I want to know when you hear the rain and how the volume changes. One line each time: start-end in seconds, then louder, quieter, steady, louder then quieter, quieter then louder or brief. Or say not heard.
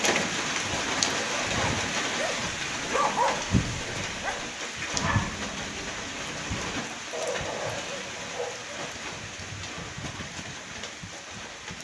0.0-11.7 quieter.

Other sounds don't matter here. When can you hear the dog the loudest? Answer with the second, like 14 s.
3 s.